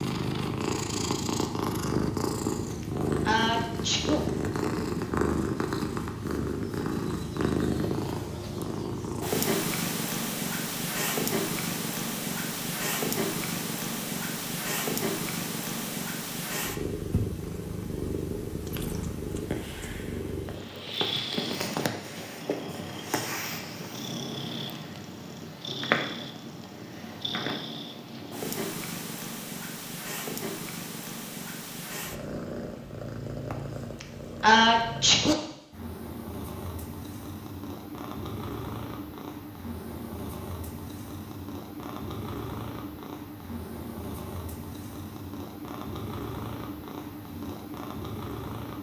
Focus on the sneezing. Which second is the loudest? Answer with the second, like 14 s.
35 s.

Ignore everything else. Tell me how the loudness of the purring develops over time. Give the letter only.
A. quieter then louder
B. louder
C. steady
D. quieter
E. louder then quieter
D.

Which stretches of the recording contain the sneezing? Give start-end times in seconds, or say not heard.
2.8-4.2, 34.0-35.4.